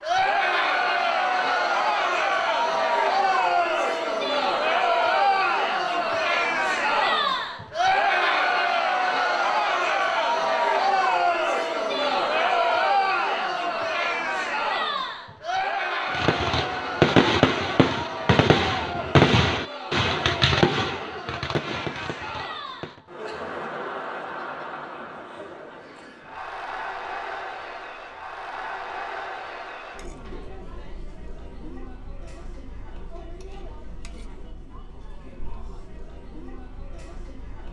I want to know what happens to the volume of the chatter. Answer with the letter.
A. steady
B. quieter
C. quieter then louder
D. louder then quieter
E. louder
B.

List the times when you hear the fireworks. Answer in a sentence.
You can hear the fireworks from 16.1 to 23.0 s.